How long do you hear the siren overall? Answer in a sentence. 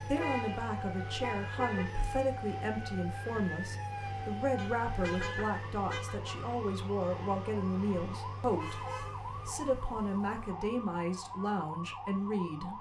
The siren can be heard for 13 seconds in total.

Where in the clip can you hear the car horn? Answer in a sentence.
You can hear the car horn from 0.1 to 1.9 s, from 4.5 to 6.2 s and from 8.6 to 10.4 s.